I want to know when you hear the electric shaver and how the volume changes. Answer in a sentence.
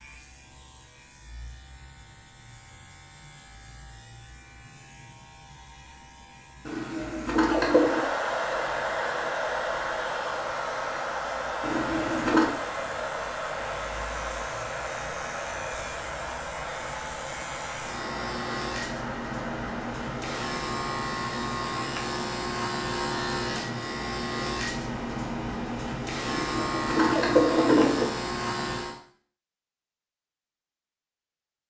The electric shaver can be heard from 0.0 to 29.0 s, getting louder.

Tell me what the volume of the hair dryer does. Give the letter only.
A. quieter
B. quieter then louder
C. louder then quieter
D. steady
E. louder
A.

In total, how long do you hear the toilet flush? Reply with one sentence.
The toilet flush can be heard for 4 seconds in total.